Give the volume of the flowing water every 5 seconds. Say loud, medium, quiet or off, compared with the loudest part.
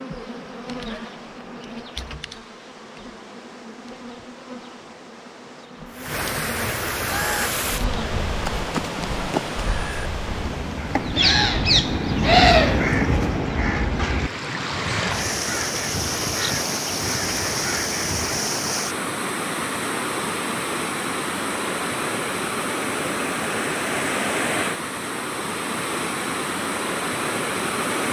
quiet, loud, medium, loud, loud, loud.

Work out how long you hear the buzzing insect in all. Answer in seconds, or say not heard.
8 s.